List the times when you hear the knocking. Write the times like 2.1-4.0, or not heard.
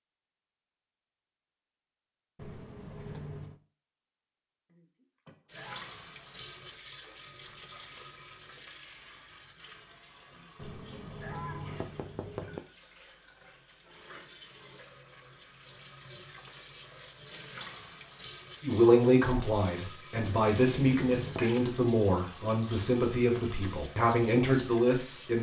2.4-3.6, 10.6-12.6, 20.1-21.5.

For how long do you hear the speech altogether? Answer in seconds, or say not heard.
7 s.